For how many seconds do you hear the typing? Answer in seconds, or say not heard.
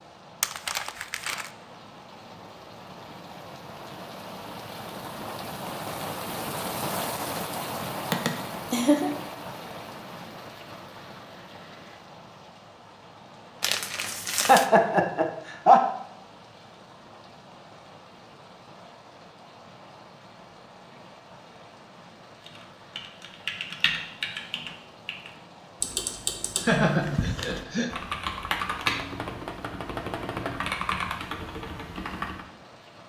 10 s.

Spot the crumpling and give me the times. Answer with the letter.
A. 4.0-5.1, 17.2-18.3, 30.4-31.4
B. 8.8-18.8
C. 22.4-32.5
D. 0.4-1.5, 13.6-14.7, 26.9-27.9
D.